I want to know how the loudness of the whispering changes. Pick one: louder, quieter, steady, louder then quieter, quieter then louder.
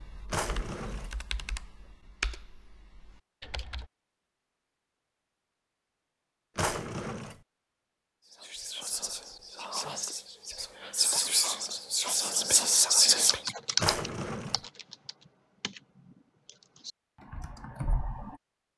louder.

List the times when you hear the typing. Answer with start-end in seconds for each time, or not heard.
0.0-3.9, 13.1-18.4.